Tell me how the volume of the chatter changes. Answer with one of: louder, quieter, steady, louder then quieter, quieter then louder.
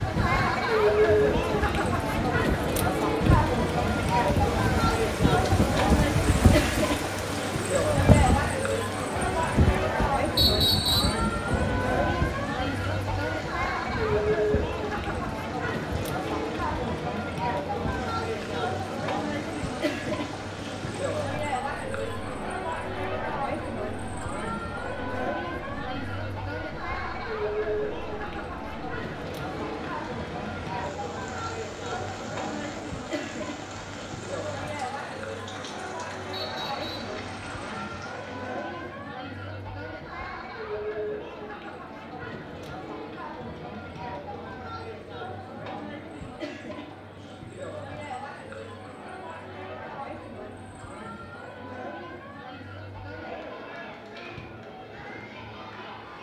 quieter.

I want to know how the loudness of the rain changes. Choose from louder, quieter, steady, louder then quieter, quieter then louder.
quieter.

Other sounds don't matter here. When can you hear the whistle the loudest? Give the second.
11 s.